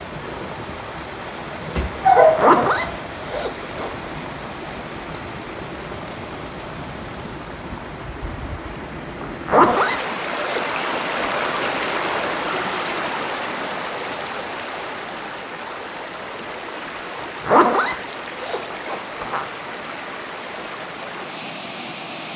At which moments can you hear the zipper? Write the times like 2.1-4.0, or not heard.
2.4-4.0, 9.2-11.4, 17.1-19.4.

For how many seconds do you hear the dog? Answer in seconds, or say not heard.
2 s.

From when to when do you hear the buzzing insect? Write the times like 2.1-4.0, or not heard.
not heard.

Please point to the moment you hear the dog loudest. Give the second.
2 s.